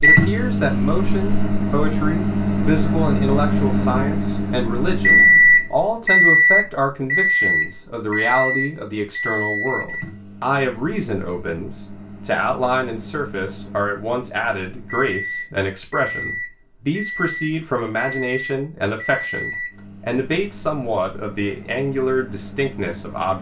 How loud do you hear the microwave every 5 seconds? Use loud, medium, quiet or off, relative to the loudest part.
loud, loud, quiet, quiet, quiet.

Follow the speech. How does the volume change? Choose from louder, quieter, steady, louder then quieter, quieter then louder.
steady.